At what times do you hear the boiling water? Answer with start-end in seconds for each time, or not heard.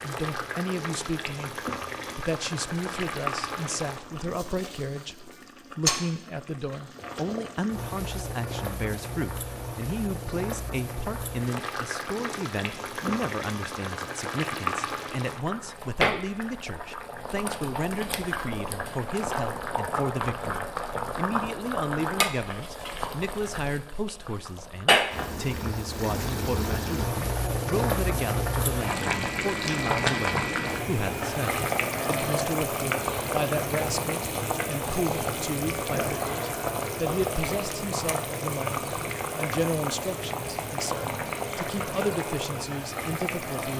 0.0-43.7.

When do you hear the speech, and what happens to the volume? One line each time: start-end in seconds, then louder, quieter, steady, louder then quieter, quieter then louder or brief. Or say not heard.
0.0-43.7 steady.